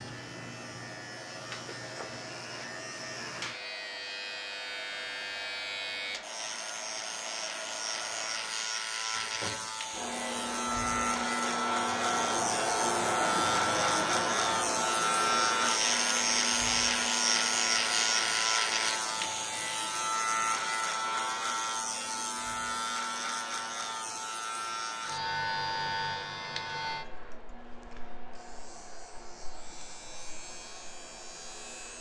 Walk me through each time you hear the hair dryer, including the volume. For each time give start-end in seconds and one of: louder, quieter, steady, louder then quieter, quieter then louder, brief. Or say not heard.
0.1-31.9 louder then quieter.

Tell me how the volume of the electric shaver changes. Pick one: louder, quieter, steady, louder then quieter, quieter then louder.
louder then quieter.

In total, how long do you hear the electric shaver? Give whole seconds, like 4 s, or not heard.
32 s.